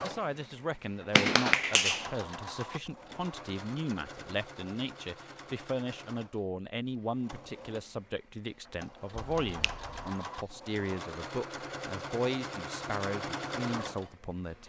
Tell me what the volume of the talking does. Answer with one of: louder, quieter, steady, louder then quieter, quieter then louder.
steady.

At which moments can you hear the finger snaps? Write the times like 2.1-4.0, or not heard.
1.1-2.0, 9.4-10.1.